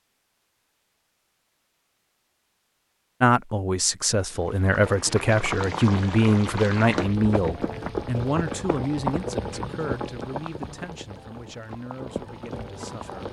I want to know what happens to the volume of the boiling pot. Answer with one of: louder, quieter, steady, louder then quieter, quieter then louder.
quieter.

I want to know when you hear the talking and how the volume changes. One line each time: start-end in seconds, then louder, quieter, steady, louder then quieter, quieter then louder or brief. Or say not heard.
3.2-13.2 quieter.